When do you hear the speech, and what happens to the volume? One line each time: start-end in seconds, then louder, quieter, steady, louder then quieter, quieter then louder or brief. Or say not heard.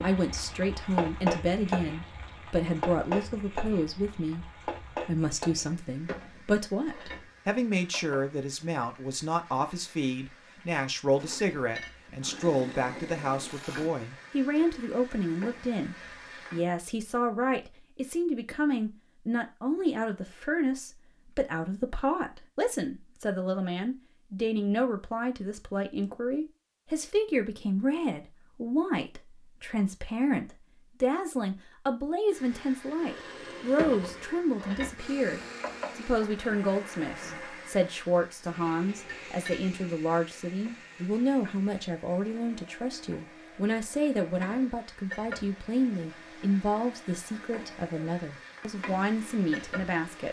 0.0-50.2 steady.